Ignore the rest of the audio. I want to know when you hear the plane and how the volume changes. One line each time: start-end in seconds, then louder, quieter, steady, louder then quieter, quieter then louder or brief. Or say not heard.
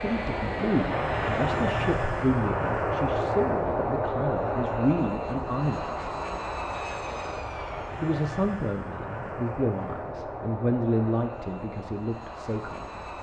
0.0-13.1 quieter.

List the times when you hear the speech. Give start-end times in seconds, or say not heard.
0.0-6.0, 8.0-13.1.